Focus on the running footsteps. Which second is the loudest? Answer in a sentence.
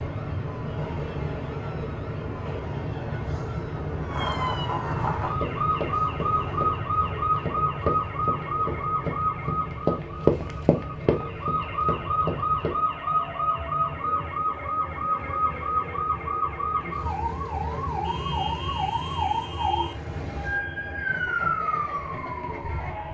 The volume of the running footsteps peaks at 10 seconds.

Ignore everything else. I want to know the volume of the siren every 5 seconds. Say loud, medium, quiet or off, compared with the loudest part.
medium, loud, loud, loud, loud.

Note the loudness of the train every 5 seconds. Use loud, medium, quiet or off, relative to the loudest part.
loud, loud, medium, medium, medium.